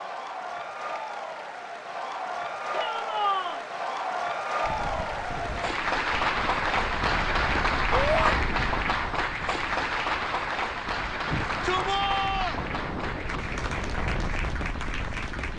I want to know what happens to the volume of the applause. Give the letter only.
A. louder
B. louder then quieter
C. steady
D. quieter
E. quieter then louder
B.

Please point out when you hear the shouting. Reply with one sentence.
You can hear the shouting from 2.7 to 3.6 s, from 7.9 to 8.3 s and from 11.2 to 12.6 s.